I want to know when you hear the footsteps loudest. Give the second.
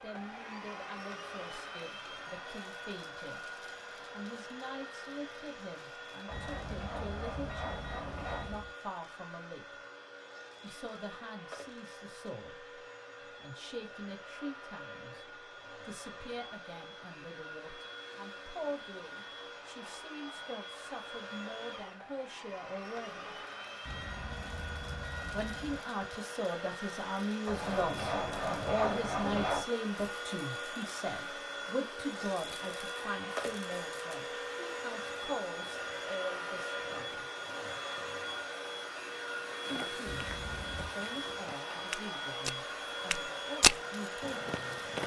44 s.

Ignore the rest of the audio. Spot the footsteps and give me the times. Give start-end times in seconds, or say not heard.
39.5-45.0.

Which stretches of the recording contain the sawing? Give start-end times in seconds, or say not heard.
6.2-8.6, 27.4-29.6.